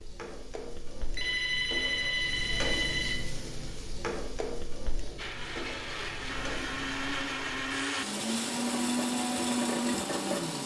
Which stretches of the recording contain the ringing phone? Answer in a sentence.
The ringing phone can be heard from 1.1 to 3.2 s.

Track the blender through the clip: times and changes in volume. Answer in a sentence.
You can hear the blender from 5.2 to 10.6 s, getting louder.